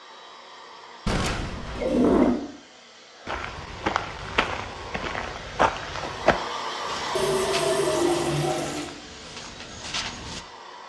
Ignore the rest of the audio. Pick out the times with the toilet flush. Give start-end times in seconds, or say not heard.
1.1-2.4, 7.2-8.9.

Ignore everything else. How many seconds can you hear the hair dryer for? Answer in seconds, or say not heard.
11 s.